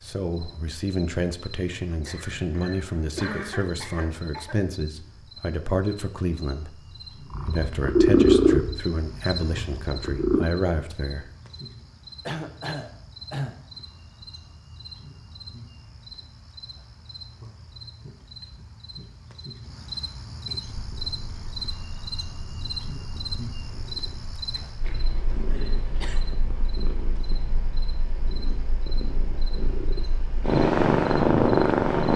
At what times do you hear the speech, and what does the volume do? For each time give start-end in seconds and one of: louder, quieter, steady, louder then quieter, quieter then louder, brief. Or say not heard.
0.0-11.3 steady.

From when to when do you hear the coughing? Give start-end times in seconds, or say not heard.
2.0-4.6, 12.2-13.6, 24.6-26.3.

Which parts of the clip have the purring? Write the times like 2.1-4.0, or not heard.
7.3-10.4, 20.8-32.1.